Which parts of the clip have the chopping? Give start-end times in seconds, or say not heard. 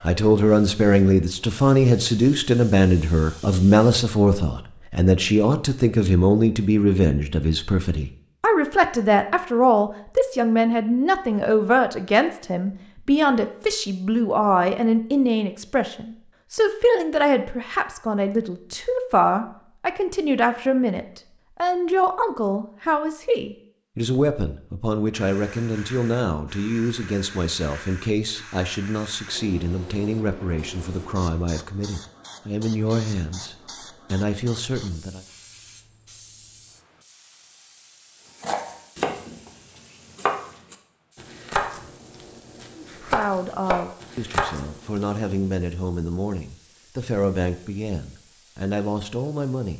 38.2-45.2.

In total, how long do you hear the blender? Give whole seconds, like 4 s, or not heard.
not heard.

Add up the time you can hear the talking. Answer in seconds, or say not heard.
42 s.